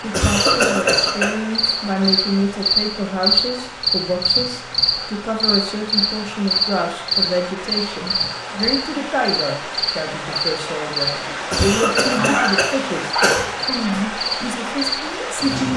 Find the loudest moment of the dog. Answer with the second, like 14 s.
12 s.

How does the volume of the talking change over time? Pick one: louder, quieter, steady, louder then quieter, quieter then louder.
steady.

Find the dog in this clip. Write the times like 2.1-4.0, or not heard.
11.2-14.1.